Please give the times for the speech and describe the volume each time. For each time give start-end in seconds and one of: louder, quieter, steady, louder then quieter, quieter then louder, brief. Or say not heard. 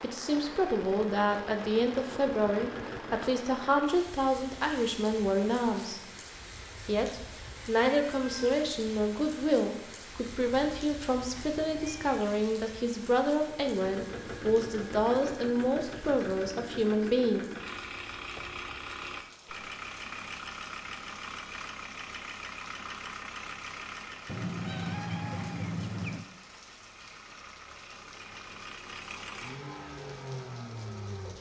0.0-6.0 steady
6.8-17.4 steady.